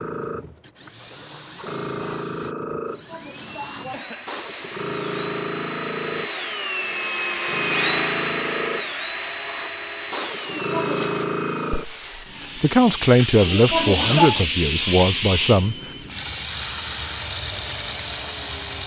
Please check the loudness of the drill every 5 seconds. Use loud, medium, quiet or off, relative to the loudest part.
quiet, loud, medium, quiet.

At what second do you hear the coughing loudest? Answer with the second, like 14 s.
14 s.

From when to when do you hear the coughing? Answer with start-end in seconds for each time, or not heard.
3.0-4.2, 10.4-11.1, 13.5-14.4.